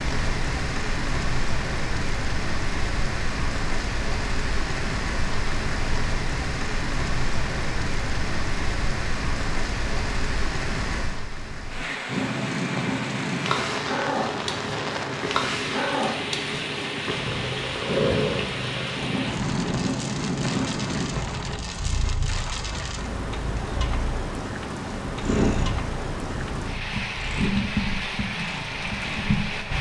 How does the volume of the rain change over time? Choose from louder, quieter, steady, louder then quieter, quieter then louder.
steady.